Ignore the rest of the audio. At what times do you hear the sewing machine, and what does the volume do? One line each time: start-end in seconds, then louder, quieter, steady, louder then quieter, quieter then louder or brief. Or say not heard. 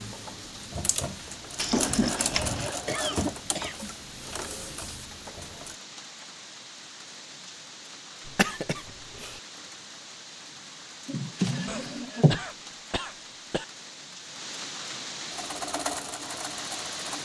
0.0-5.8 louder then quieter
15.3-17.2 brief.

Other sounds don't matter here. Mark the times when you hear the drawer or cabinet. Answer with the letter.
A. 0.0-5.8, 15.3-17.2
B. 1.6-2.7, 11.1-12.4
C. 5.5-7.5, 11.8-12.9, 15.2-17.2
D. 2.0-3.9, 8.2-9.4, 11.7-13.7
B.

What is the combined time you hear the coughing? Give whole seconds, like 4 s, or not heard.
5 s.